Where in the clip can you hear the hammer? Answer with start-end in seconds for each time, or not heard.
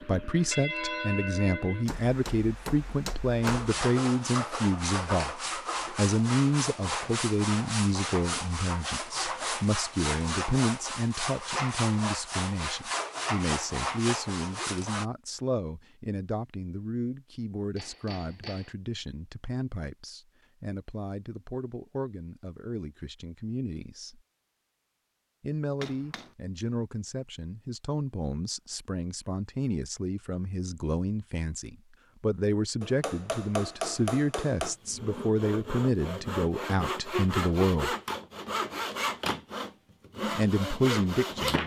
1.9-3.7, 17.8-18.8, 25.8-26.3, 32.8-34.8.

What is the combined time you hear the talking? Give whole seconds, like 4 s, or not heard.
38 s.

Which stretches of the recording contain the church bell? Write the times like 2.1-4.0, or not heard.
0.0-1.9.